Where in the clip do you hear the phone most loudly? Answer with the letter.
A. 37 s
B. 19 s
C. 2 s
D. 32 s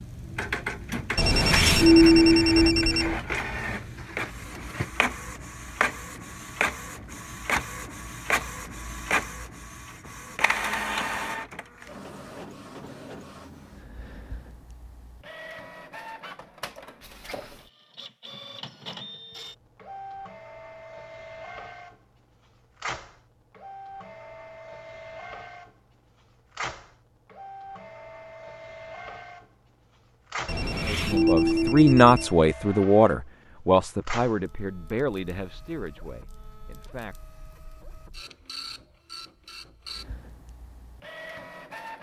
C.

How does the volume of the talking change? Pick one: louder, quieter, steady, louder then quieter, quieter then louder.
quieter.